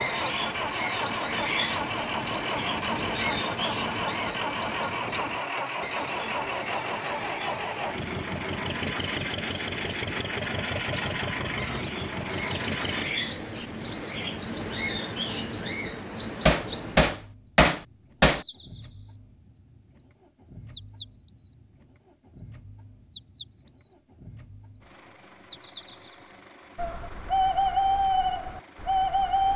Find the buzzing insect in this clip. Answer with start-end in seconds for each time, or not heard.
not heard.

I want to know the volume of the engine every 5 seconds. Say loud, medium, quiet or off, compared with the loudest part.
loud, loud, loud, quiet, quiet, quiet.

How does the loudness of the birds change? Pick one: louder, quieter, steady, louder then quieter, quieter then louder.
quieter then louder.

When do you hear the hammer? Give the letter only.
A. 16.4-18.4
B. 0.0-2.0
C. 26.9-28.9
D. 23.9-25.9
A.